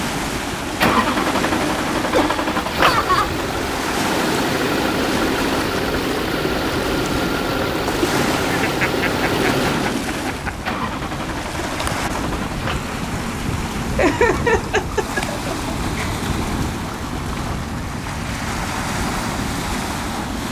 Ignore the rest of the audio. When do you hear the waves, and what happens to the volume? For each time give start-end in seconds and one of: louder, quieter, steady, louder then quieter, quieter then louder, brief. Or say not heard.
0.0-20.4 steady.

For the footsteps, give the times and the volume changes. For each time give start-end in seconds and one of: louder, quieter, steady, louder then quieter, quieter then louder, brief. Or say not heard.
not heard.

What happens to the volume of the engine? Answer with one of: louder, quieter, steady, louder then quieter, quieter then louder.
quieter.